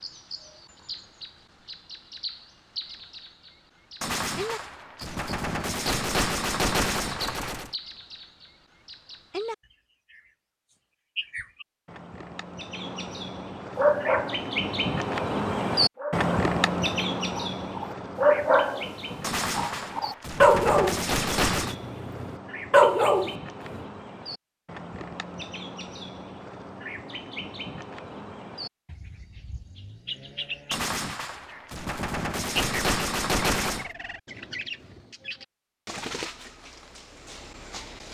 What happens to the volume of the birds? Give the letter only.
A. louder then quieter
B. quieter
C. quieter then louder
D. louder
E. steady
A.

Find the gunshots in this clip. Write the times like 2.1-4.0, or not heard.
4.0-7.7, 19.2-21.8, 30.7-33.9.